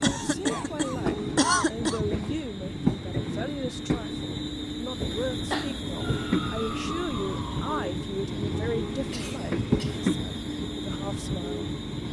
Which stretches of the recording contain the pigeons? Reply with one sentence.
You can't hear the pigeons here.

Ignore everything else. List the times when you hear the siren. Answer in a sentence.
You can hear the siren from 6.0 to 7.8 s.